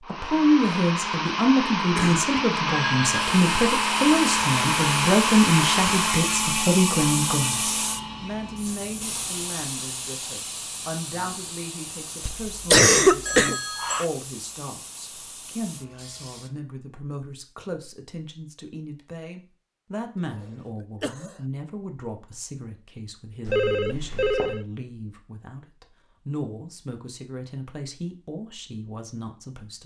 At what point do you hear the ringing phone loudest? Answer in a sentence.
The volume of the ringing phone peaks at 24 seconds.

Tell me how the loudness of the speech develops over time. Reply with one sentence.
The volume of the speech goes down.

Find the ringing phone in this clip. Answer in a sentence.
You can hear the ringing phone from 2.6 to 3.2 s, from 13.2 to 14.1 s and from 23.4 to 24.6 s.